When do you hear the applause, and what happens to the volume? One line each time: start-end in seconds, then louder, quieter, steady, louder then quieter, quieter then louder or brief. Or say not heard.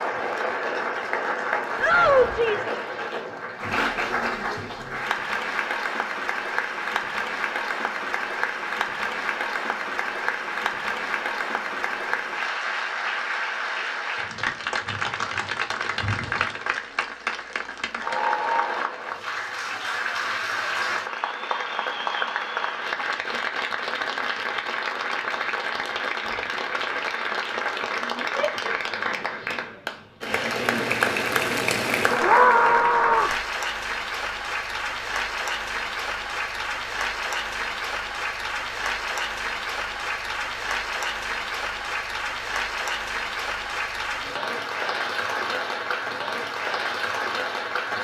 0.0-47.9 steady.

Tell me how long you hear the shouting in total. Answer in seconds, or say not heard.
3 s.